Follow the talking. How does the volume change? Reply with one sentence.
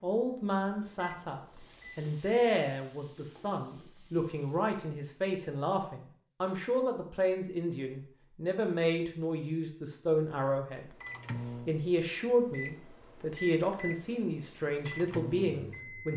The volume of the talking stays about the same.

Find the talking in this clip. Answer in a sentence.
The talking can be heard from 0.0 to 10.9 s and from 11.7 to 16.1 s.